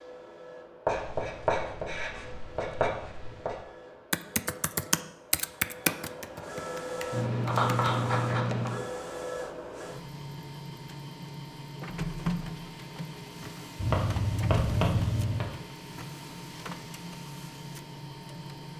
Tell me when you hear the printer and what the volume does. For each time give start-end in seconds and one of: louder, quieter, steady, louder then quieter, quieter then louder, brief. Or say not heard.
0.0-18.7 louder.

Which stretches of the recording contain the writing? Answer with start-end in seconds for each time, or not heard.
0.8-3.6, 7.1-8.8, 13.8-15.4.